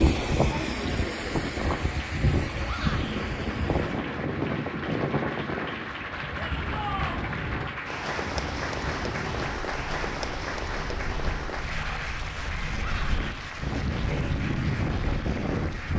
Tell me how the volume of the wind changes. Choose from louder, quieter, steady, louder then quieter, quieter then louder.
quieter then louder.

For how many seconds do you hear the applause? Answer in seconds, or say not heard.
16 s.